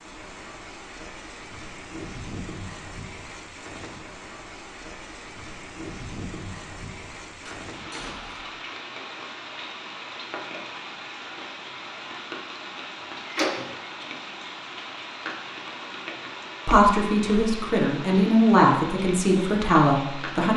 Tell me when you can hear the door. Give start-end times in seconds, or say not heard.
7.5-8.6, 13.2-13.8.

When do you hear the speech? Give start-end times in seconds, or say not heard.
16.6-20.5.